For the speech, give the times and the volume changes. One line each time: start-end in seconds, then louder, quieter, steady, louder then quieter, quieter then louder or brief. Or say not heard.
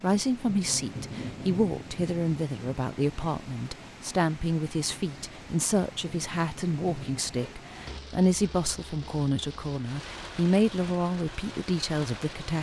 0.0-12.5 steady.